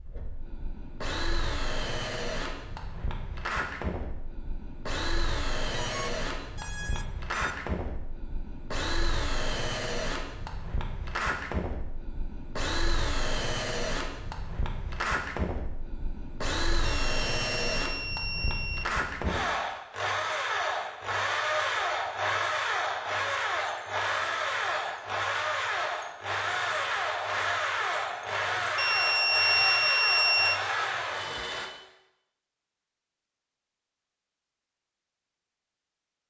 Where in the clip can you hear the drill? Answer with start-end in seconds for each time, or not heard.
0.0-31.7.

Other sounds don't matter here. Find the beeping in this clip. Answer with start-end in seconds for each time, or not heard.
5.7-7.3, 16.8-18.9, 28.8-30.6.